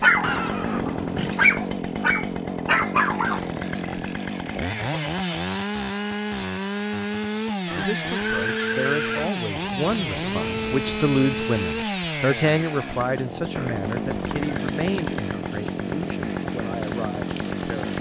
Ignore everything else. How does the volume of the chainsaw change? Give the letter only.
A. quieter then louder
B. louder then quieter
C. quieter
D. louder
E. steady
E.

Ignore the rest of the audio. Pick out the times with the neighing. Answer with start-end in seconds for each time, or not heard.
0.2-1.4, 7.7-9.3, 13.6-14.6.